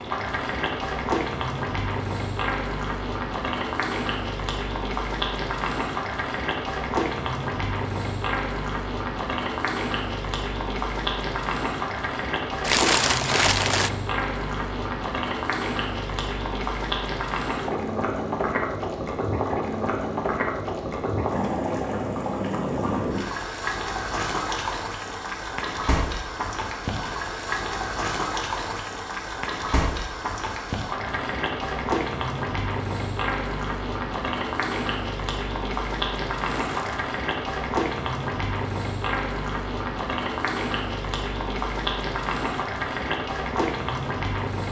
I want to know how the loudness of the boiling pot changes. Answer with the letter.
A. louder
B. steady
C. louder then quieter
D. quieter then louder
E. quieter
B.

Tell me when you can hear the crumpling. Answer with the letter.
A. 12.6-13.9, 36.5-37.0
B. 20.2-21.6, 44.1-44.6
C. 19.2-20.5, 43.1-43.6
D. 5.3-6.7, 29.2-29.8
A.